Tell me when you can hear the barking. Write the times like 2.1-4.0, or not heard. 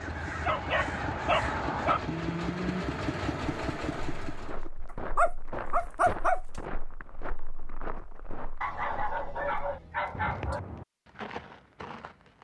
0.5-2.0, 5.2-6.4, 8.6-10.6.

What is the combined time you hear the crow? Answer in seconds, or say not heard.
2 s.